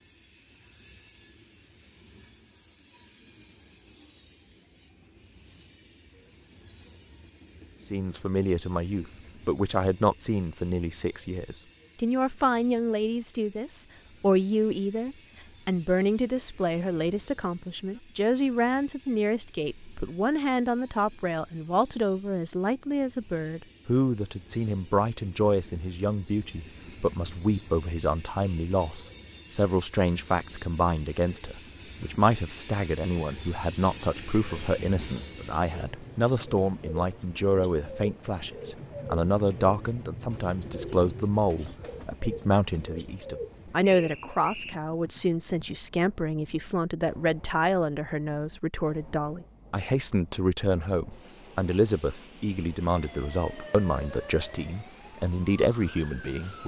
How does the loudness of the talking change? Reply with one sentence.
The volume of the talking stays about the same.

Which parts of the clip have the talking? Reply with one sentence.
You can hear the talking from 7.8 to 56.6 s.